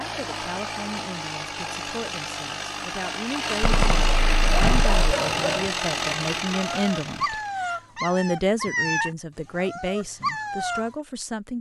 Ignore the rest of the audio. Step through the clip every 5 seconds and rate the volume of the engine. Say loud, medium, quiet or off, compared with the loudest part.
loud, loud, off.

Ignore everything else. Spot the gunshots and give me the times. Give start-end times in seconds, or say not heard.
3.6-5.0.